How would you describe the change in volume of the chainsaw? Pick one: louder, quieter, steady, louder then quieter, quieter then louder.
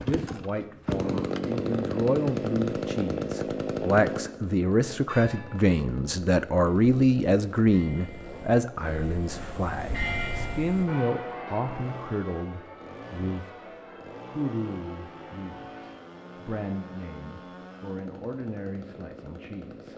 quieter.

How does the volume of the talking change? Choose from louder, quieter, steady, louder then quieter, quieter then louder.
louder then quieter.